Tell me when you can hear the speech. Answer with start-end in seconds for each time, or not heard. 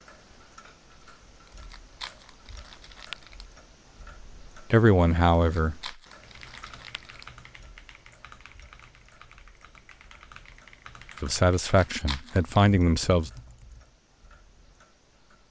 4.7-6.0, 11.2-13.3.